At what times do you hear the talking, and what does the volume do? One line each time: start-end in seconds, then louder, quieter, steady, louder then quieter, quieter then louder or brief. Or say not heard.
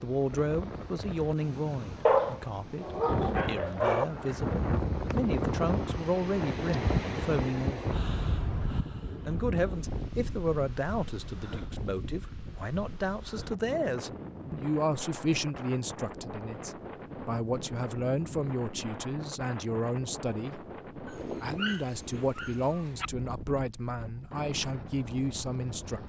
0.0-8.0 quieter then louder
9.2-26.0 steady.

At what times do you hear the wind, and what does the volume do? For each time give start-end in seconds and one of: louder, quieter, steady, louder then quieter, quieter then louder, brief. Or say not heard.
0.0-26.0 quieter.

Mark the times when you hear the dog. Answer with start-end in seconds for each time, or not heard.
2.0-4.0, 21.1-23.1.